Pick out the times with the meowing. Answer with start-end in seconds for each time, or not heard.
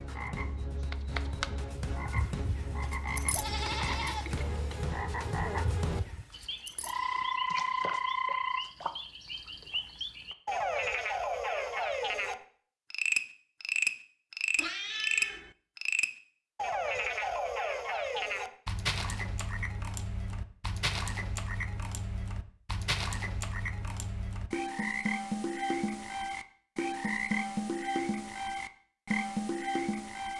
14.6-15.6.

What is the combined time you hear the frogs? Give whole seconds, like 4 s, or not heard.
30 s.